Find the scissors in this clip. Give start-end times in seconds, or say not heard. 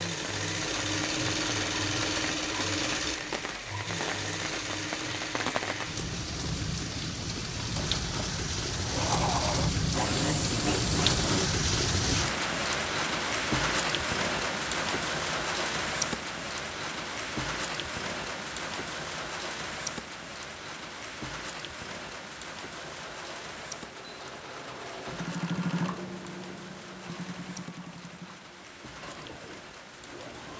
not heard.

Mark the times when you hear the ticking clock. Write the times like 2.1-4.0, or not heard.
not heard.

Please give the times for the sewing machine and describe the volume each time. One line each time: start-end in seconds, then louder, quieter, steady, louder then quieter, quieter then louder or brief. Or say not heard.
0.0-11.5 quieter then louder
22.7-30.5 louder then quieter.